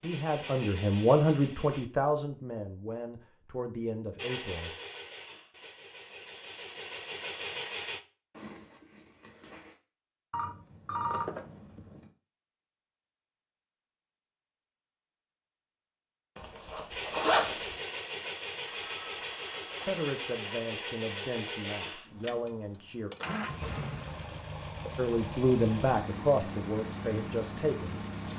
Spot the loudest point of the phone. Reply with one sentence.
The loudest moment of the phone is at 11 seconds.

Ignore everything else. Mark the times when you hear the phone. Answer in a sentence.
You can hear the phone from 10.3 to 12.1 s and from 18.6 to 20.4 s.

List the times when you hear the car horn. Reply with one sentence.
You can't hear the car horn here.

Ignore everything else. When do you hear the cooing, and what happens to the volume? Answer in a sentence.
You can't hear the cooing here.